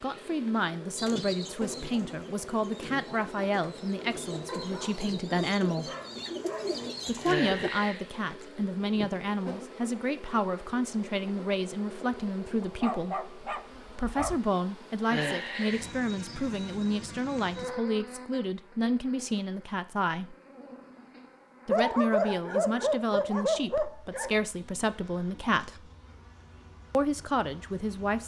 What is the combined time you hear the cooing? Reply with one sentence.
The cooing can be heard for 7 seconds in total.